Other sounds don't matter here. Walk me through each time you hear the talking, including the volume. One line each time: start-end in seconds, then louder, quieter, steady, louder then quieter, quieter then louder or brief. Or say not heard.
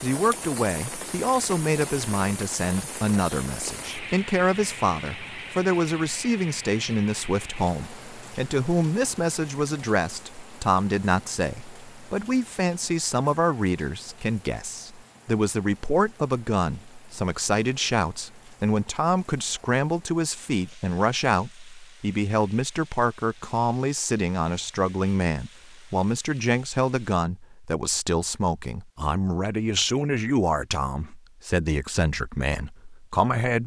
0.0-33.6 steady.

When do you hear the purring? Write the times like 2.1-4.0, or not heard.
not heard.